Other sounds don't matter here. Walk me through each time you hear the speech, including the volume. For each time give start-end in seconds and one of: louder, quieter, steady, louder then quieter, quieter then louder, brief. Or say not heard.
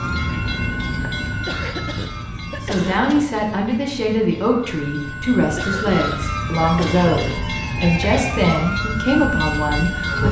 2.6-10.2 steady.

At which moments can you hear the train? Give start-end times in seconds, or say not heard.
0.0-10.2.